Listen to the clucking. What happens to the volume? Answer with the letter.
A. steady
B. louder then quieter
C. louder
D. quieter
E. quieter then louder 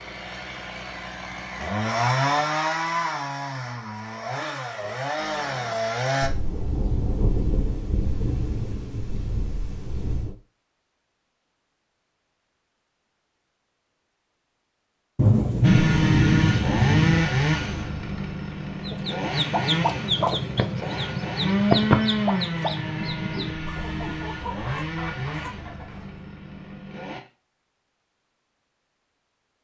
D.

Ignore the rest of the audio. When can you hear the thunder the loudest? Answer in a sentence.
The loudest moment of the thunder is at 16 seconds.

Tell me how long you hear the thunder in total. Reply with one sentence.
The thunder can be heard for 6 seconds in total.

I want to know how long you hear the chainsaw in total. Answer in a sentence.
The chainsaw can be heard for 18 seconds in total.